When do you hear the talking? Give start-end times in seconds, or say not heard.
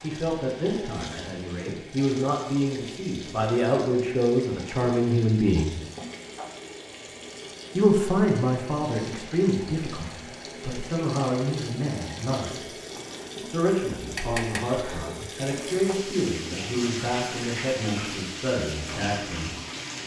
0.0-5.8, 7.8-12.7, 13.4-19.6.